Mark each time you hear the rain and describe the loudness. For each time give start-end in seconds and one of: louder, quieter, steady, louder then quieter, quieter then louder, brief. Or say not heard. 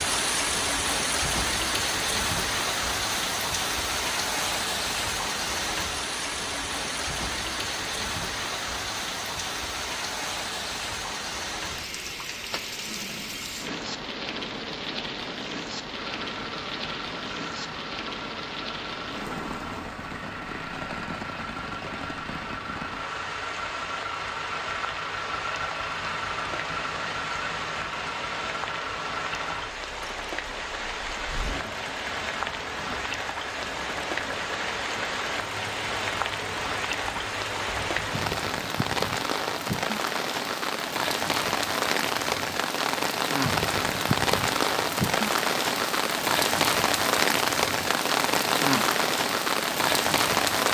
0.0-50.6 quieter then louder.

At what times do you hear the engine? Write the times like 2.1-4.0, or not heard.
15.9-38.2.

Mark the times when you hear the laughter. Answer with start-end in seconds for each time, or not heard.
not heard.